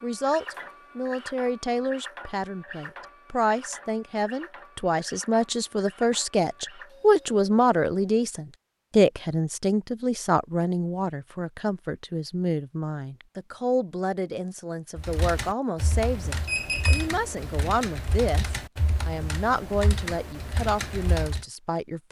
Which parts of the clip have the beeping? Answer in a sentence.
The beeping can be heard from 16.4 to 17.1 s.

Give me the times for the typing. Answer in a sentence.
You can hear the typing from 14.9 to 21.4 s.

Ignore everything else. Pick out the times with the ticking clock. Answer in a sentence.
You can't hear the ticking clock here.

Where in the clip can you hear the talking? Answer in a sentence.
You can hear the talking from 0.0 to 22.0 s.